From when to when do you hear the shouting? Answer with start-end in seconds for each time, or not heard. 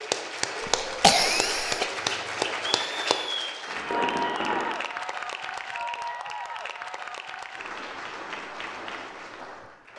not heard.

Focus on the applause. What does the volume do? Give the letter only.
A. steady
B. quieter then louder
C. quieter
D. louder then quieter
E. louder
C.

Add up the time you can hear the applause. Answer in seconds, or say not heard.
10 s.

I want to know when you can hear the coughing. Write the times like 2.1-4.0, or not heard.
0.6-1.9.